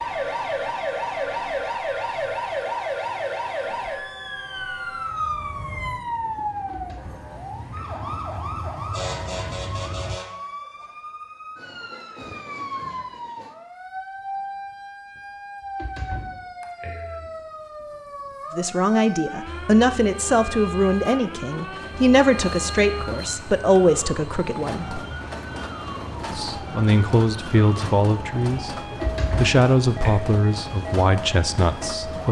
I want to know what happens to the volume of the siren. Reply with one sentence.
The volume of the siren goes down.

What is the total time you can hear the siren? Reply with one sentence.
You can hear the siren for 32 seconds altogether.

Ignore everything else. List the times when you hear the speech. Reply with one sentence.
The speech can be heard from 18.6 to 25.0 s and from 26.3 to 32.2 s.